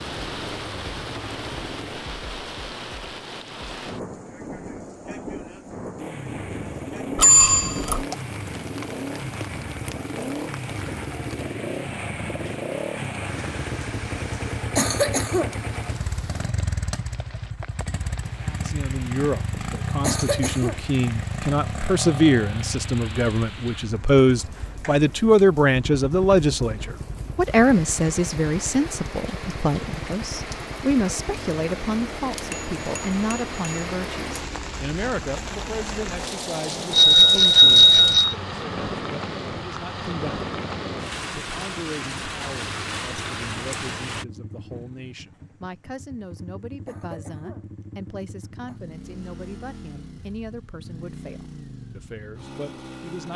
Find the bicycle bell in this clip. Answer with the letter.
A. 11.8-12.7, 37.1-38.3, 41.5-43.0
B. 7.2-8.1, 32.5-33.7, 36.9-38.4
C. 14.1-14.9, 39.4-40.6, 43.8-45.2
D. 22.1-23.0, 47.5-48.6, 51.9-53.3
B.